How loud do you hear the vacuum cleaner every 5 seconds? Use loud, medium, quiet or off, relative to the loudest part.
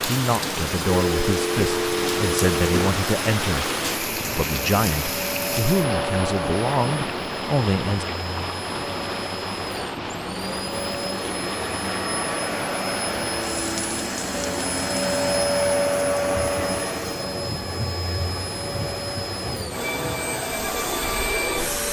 medium, medium, loud, loud, loud.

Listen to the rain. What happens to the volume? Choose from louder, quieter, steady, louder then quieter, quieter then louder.
quieter.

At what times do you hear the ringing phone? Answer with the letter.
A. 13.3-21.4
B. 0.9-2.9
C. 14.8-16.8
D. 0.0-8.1
B.